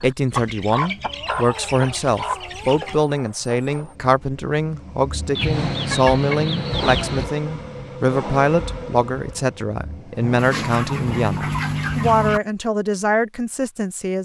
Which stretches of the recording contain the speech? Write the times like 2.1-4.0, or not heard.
0.0-14.2.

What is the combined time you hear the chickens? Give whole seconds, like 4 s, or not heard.
7 s.